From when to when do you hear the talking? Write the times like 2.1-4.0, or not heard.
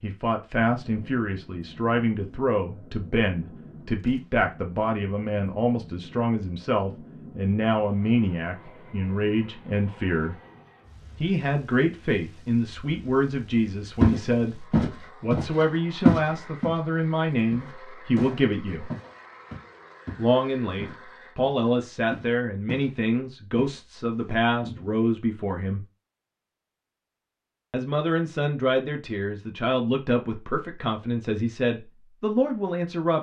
0.0-10.3, 11.2-18.9, 20.1-25.9, 27.7-33.1.